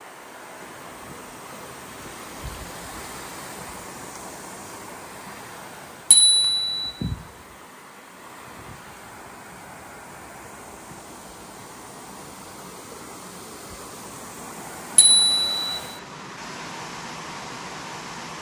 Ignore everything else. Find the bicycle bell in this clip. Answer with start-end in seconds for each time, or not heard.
6.1-6.9, 14.9-15.8.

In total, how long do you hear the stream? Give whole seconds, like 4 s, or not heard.
18 s.